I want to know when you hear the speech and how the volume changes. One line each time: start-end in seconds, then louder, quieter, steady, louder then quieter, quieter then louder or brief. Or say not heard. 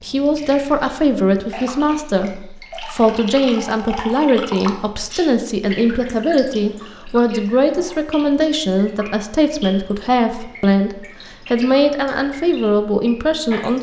0.0-13.7 steady.